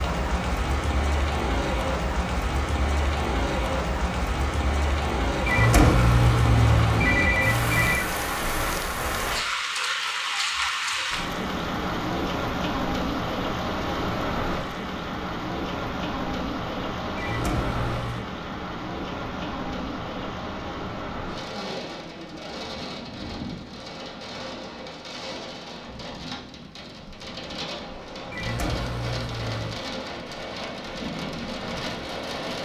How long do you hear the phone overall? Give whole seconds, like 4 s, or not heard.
5 s.